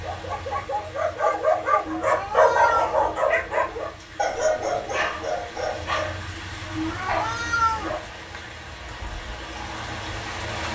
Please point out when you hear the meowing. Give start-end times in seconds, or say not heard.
1.9-3.0, 6.8-8.0.